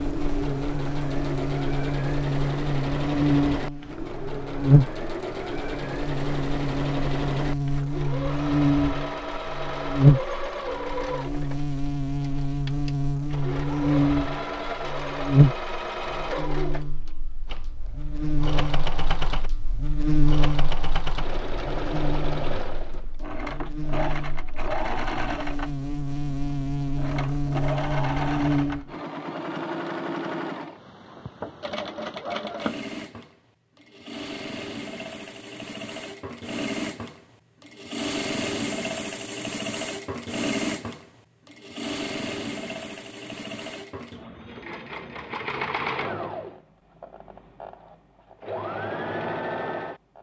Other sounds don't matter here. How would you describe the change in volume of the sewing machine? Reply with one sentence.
The loudness of the sewing machine stays about the same.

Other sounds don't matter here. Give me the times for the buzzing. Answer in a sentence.
The buzzing can be heard from 0.0 to 28.9 s.